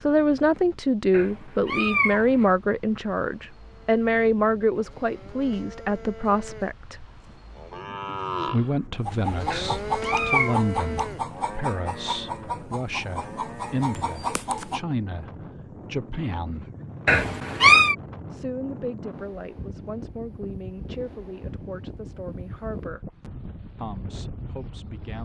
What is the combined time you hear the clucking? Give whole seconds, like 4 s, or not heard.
6 s.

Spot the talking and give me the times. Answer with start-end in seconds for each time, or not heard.
0.1-7.0, 8.4-16.7, 18.3-23.0, 23.8-25.2.